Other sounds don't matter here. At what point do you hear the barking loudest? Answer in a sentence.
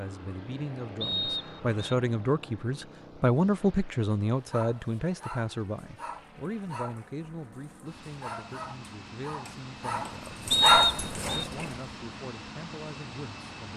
The volume of the barking peaks at 11 seconds.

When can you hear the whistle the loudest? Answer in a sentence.
The volume of the whistle peaks at 11 seconds.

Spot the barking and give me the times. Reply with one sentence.
You can hear the barking from 4.5 to 11.8 s.